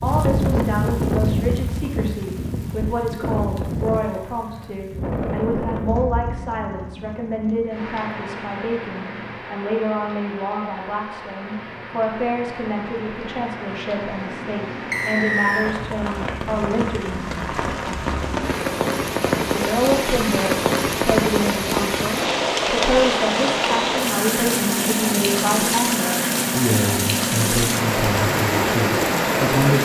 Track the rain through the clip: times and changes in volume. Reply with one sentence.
The rain can be heard from 0.0 to 29.8 s, getting quieter then louder.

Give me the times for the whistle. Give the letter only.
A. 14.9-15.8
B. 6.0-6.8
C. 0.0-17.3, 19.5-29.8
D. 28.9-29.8
A.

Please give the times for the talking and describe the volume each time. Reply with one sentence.
You can hear the talking from 0.0 to 17.3 s, at a steady volume; and from 19.5 to 29.8 s, at a steady volume.